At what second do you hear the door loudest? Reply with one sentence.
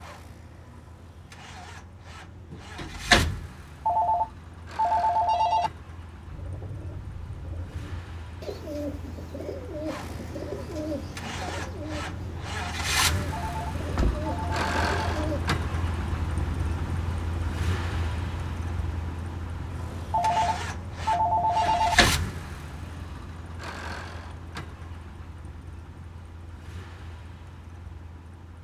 The volume of the door peaks at 3 seconds.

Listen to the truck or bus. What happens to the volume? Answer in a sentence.
The volume of the truck or bus goes up, then down.